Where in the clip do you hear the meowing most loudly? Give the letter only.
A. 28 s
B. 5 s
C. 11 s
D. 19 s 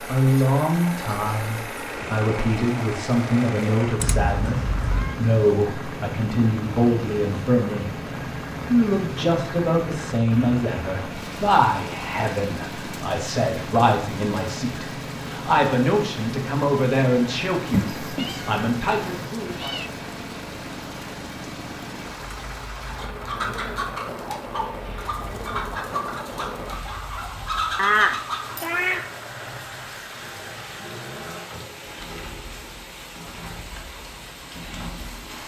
A.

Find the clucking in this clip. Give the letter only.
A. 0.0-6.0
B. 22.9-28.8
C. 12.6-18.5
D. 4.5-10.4
B.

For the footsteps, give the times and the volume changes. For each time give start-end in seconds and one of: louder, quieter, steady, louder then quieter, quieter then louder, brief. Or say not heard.
not heard.